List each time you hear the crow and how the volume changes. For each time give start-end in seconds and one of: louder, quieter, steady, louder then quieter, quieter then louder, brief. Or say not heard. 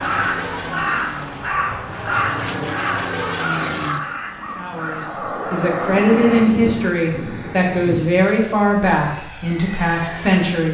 0.0-8.1 quieter.